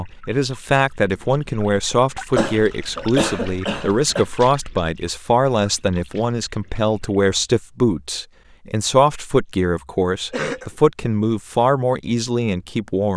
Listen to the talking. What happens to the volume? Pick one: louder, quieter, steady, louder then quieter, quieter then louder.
steady.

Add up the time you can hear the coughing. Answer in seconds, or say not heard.
2 s.